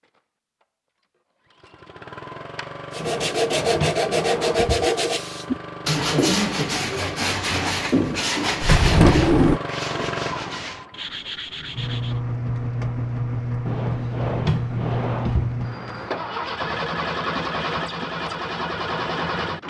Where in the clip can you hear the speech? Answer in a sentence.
You can't hear the speech here.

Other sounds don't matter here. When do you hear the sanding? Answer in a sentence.
You can hear the sanding from 2.9 to 12.2 s.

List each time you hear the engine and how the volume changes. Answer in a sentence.
You can hear the engine from 0.0 to 19.6 s, getting louder.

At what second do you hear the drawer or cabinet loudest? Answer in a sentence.
The volume of the drawer or cabinet peaks at 9 seconds.